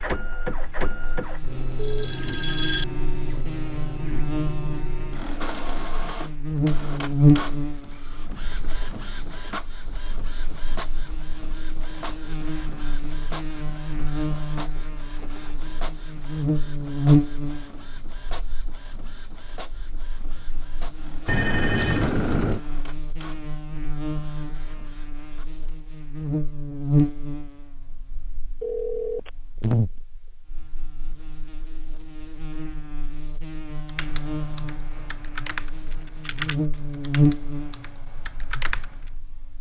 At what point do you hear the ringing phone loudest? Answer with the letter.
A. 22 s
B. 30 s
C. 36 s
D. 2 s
D.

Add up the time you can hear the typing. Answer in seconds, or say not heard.
5 s.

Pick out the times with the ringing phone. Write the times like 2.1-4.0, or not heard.
1.8-2.9, 21.2-22.6, 28.6-29.8.